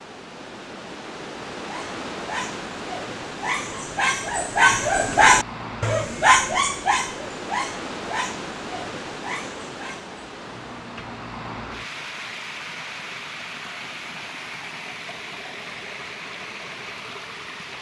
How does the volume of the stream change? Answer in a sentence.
The loudness of the stream stays about the same.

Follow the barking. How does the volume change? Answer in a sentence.
The loudness of the barking goes up, then down.